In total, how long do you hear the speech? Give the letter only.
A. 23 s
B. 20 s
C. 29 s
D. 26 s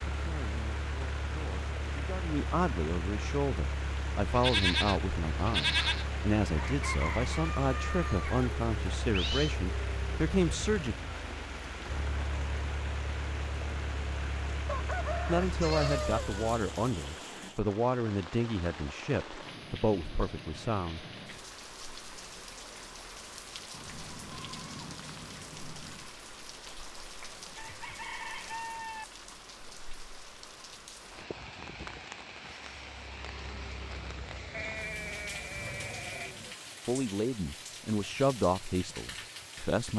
B.